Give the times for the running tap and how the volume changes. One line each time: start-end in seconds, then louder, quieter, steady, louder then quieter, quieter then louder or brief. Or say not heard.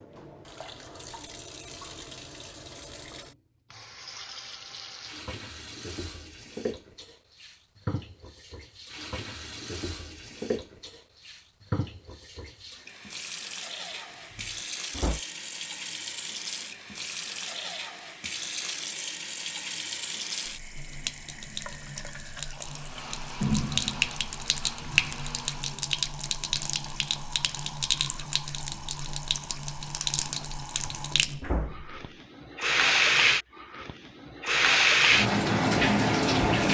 0.0-36.6 louder.